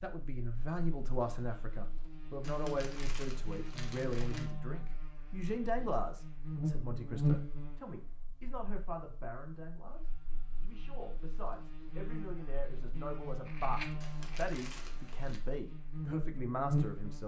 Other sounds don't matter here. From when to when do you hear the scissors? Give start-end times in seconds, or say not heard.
13.4-14.4.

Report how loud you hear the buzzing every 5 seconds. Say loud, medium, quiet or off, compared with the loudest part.
medium, loud, medium, loud.